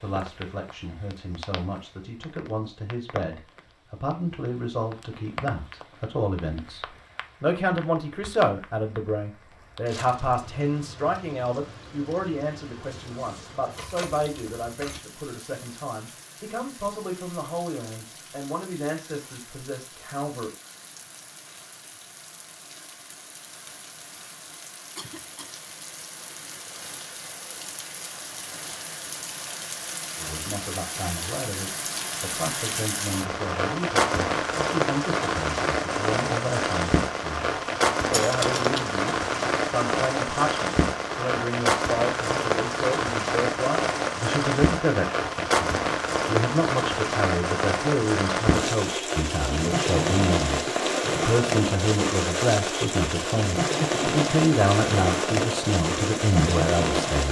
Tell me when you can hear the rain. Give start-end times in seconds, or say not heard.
0.0-57.2.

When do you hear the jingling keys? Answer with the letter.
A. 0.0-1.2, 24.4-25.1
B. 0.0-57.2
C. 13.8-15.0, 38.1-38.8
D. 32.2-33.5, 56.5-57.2
C.